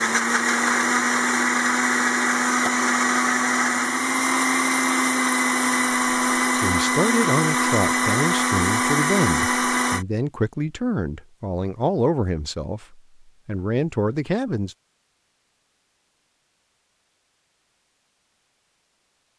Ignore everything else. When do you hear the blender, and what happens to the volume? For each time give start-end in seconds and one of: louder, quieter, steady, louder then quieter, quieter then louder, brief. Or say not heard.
0.0-10.1 steady.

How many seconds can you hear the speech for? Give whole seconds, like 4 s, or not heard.
8 s.